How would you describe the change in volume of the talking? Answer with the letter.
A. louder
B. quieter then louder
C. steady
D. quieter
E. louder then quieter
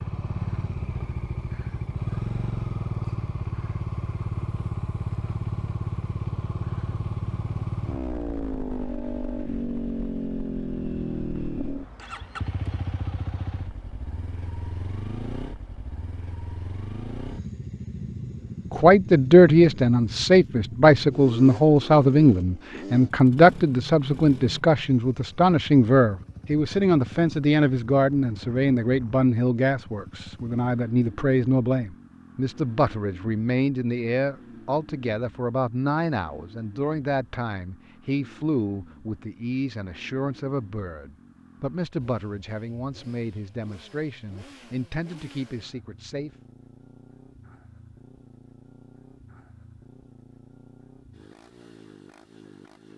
D.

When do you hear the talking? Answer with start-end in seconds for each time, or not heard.
18.7-46.3.